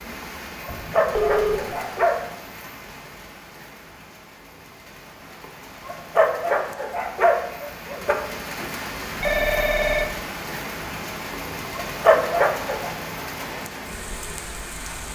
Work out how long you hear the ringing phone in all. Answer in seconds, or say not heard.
2 s.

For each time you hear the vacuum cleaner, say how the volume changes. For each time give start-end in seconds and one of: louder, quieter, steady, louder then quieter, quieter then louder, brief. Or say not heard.
not heard.